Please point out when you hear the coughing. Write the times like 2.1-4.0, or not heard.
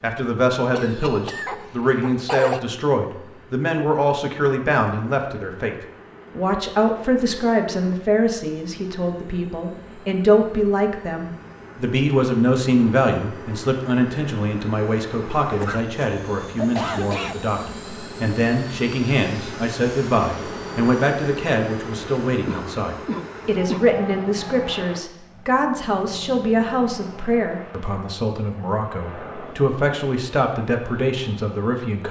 0.7-2.6, 15.5-17.4, 22.4-23.9.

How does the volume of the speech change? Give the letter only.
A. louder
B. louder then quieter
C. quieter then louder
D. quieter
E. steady
E.